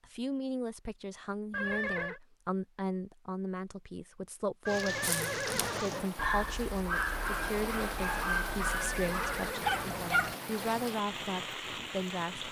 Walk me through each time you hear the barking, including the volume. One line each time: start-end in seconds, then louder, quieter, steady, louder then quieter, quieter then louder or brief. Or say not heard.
5.0-10.3 steady.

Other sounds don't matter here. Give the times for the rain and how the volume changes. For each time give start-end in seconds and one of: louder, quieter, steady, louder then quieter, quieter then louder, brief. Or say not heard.
4.7-12.4 steady.